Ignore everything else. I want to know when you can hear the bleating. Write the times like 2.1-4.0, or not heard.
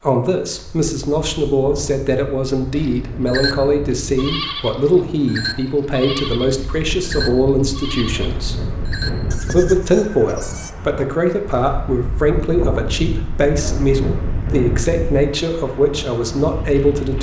2.8-10.7.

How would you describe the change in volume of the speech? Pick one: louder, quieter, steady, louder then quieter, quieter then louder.
steady.